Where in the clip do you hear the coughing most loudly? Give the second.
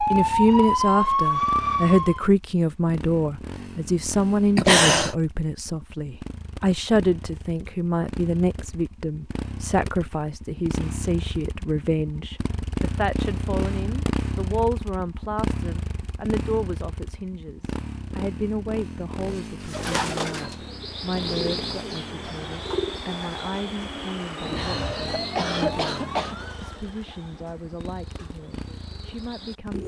5 s.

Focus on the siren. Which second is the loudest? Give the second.
1 s.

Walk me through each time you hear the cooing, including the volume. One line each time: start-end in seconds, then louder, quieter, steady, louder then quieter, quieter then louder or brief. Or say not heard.
19.6-29.8 quieter.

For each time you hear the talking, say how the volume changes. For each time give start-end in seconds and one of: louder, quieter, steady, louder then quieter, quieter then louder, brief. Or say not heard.
0.0-29.8 quieter.